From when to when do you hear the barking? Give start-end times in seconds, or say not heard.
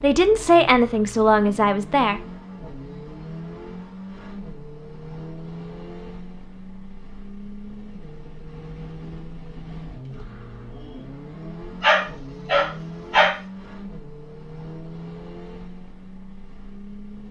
11.8-13.4.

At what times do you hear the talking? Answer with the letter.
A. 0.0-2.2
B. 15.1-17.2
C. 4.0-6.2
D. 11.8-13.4
A.